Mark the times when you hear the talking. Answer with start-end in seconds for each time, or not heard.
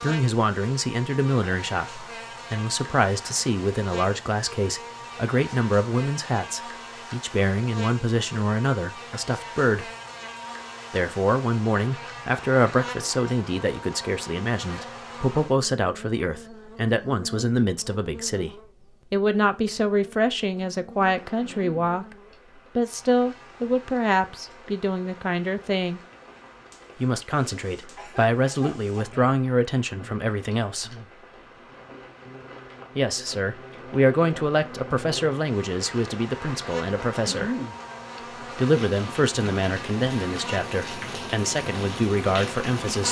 0.0-9.9, 10.9-22.1, 22.8-26.0, 26.9-30.9, 33.0-37.5, 38.4-43.0.